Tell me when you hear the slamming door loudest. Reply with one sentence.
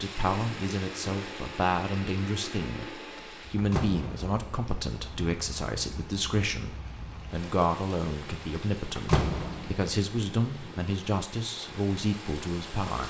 The loudest moment of the slamming door is at 9 seconds.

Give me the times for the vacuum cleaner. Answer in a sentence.
You can hear the vacuum cleaner from 0.2 to 3.5 s.